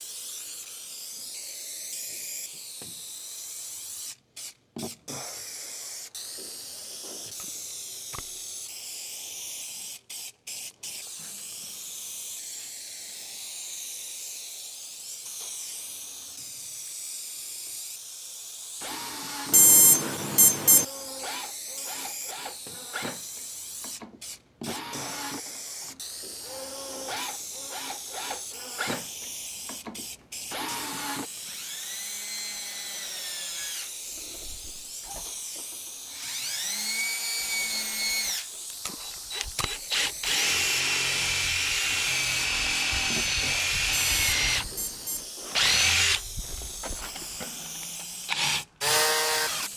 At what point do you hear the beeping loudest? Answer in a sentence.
The loudest moment of the beeping is at 20 seconds.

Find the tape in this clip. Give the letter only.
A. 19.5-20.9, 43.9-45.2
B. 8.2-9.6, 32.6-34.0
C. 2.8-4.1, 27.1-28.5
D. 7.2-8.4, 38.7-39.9
D.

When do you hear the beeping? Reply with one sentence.
The beeping can be heard from 19.5 to 20.9 s and from 43.9 to 45.2 s.